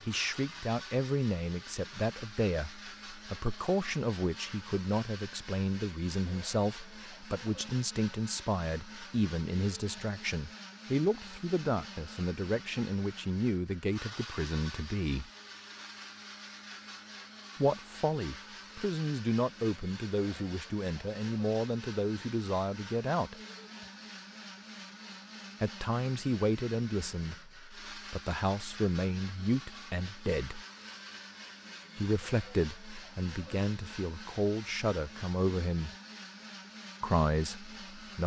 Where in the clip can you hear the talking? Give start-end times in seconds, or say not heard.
0.1-15.3, 17.6-23.4, 25.6-30.6, 31.9-35.9, 37.0-38.2.